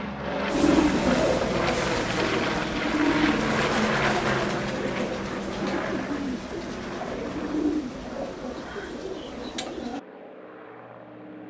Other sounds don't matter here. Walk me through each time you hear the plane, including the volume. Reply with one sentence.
You can hear the plane from 0.0 to 11.4 s, getting quieter.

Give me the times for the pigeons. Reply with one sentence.
You can hear the pigeons from 0.5 to 10.0 s.